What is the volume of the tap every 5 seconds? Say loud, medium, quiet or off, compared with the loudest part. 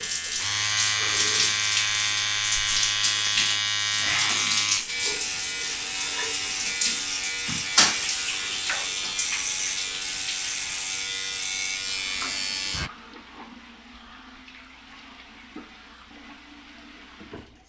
loud, loud, quiet, quiet.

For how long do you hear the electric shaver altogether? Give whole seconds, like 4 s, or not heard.
13 s.